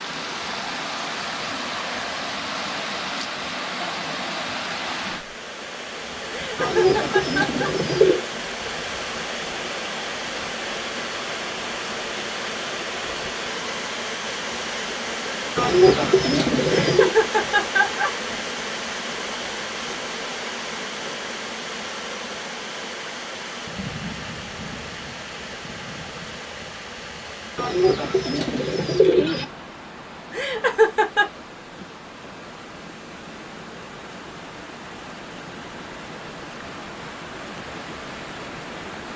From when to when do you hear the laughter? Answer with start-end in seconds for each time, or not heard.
6.3-7.7, 16.7-18.1, 30.3-31.2.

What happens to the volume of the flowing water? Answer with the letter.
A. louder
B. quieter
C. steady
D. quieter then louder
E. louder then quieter
B.